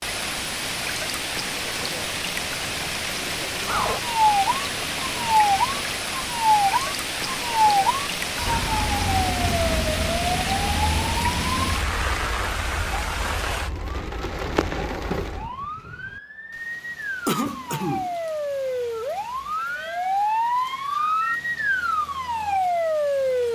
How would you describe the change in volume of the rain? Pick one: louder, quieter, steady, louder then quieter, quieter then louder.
quieter.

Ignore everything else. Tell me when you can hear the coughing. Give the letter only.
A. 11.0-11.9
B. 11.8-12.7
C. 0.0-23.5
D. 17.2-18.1
D.